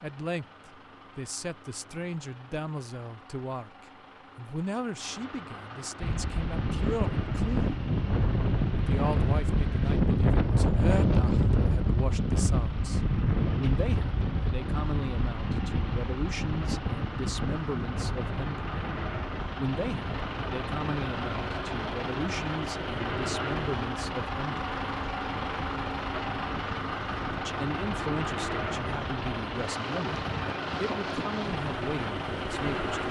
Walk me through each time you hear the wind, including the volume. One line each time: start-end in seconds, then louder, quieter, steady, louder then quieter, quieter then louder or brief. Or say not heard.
6.0-33.0 quieter.